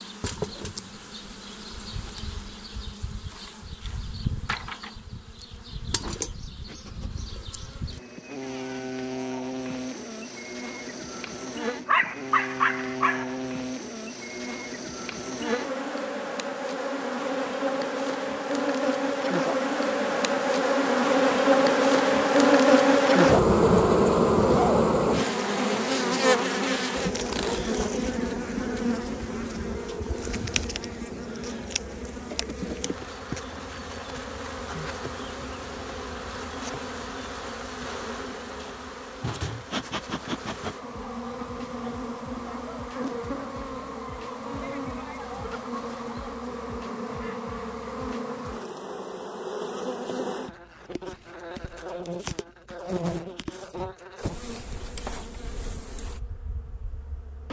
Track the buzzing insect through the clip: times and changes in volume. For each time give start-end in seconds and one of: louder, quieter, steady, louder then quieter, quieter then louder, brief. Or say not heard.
0.0-57.4 louder then quieter.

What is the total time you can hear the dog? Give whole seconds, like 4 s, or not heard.
2 s.